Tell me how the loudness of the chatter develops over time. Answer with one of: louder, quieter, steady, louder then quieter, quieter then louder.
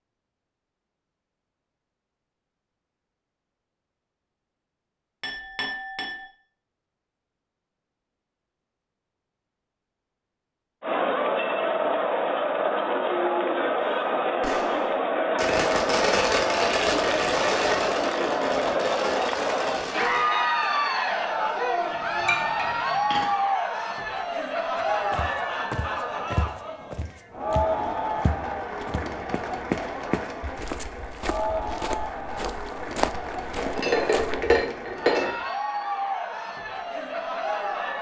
quieter.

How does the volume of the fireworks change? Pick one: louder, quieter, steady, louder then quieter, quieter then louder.
louder then quieter.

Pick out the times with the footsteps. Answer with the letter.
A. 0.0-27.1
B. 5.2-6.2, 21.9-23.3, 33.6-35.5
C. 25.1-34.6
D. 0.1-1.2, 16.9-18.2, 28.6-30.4
C.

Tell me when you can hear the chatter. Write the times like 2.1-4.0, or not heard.
10.8-37.9.